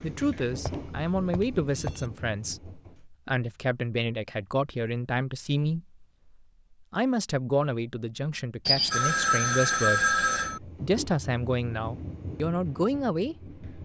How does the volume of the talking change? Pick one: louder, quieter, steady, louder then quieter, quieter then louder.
steady.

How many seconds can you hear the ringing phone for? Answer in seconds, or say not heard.
4 s.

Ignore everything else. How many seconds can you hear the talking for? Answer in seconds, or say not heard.
13 s.